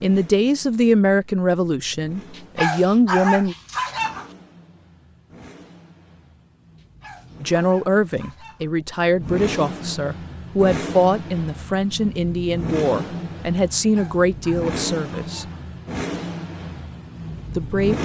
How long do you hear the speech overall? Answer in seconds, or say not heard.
12 s.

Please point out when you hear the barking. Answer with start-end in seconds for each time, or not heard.
2.4-4.3, 6.8-8.7, 13.9-15.6.